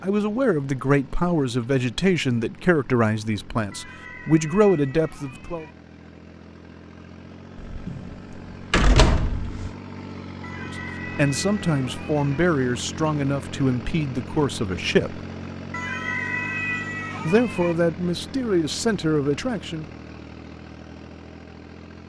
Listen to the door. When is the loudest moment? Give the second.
9 s.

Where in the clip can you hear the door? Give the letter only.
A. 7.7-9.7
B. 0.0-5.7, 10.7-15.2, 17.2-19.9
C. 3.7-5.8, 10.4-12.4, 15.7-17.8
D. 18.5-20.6
A.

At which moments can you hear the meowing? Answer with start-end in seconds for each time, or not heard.
3.7-5.8, 10.4-12.4, 15.7-17.8.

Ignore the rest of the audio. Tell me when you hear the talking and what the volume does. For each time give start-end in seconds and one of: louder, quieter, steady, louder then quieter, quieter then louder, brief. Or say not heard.
0.0-5.7 quieter then louder
10.7-15.2 steady
17.2-19.9 brief.